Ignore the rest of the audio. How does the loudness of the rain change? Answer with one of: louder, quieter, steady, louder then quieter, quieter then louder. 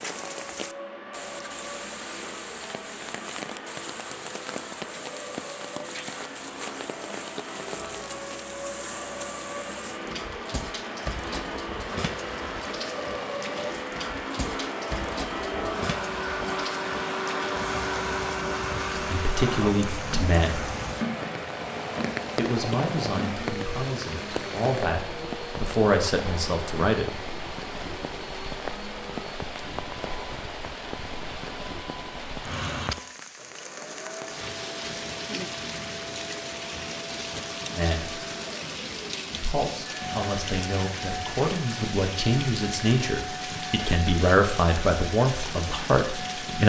steady.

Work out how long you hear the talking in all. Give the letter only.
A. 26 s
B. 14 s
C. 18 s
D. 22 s
B.